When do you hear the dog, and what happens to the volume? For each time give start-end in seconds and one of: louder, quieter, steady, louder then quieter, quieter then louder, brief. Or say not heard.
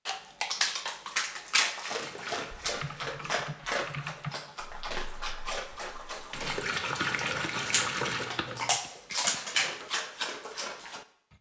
0.1-11.1 quieter then louder.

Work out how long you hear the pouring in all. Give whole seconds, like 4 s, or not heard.
3 s.